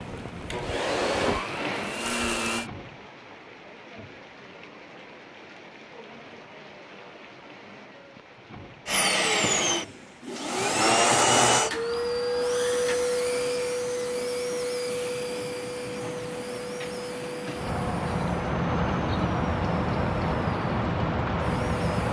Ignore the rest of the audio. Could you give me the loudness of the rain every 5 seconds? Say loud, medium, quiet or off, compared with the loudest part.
quiet, quiet, quiet, loud, loud.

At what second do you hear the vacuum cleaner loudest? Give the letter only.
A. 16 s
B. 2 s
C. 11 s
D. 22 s
C.